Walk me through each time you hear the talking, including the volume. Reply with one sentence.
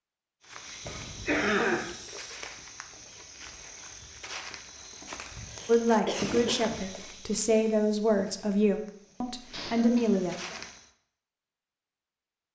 You can hear the talking from 5.7 to 10.3 s, at a steady volume.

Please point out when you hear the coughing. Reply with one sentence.
The coughing can be heard from 0.8 to 1.9 s, from 5.0 to 6.8 s and from 9.5 to 10.6 s.